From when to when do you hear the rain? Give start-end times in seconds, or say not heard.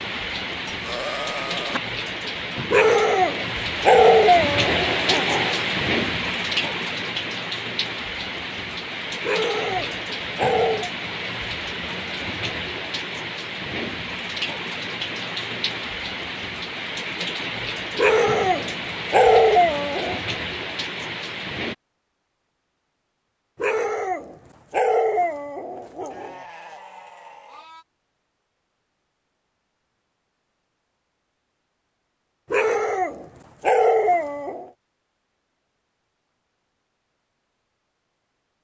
0.0-21.8.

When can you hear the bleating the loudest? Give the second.
1 s.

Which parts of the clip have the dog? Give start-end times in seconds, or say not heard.
2.7-5.6, 9.2-10.9, 17.9-20.2, 23.6-26.4, 32.5-34.7.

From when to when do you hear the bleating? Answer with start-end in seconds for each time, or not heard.
0.7-1.8, 26.1-27.9.